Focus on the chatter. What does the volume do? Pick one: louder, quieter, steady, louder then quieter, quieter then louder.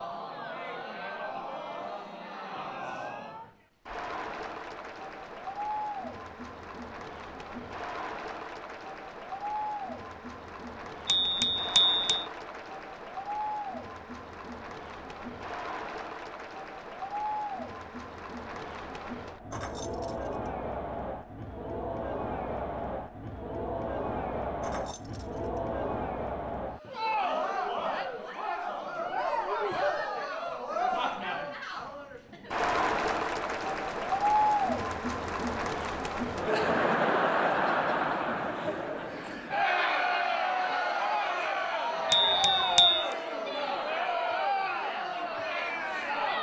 louder.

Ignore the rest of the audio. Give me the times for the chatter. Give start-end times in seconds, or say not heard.
0.0-46.3.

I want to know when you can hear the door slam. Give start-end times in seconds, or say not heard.
not heard.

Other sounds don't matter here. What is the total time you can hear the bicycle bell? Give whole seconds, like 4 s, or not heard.
2 s.